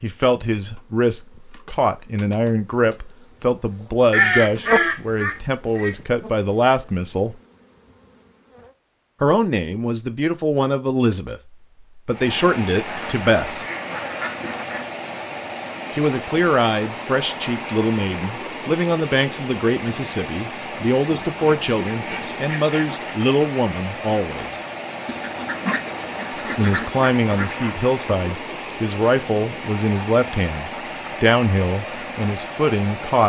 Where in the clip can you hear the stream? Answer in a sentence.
You can hear the stream from 12.1 to 33.2 s.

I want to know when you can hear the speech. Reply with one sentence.
The speech can be heard from 0.0 to 7.3 s, from 9.2 to 13.7 s, from 15.9 to 24.6 s and from 26.6 to 33.2 s.